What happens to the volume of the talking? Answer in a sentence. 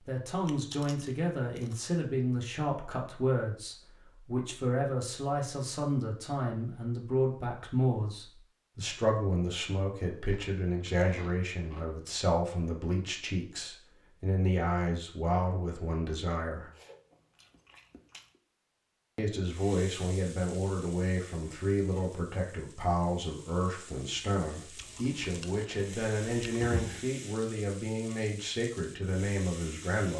The loudness of the talking stays about the same.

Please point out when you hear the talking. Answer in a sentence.
You can hear the talking from 0.0 to 16.6 s and from 19.1 to 30.1 s.